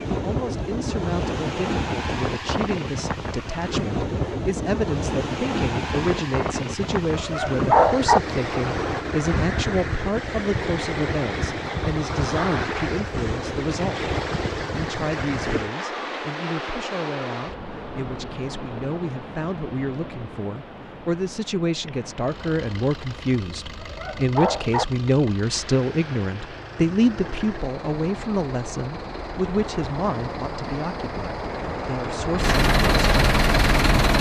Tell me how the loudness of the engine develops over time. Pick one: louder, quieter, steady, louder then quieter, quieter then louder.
louder.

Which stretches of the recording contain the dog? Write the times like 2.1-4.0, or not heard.
7.2-8.2, 23.8-24.9.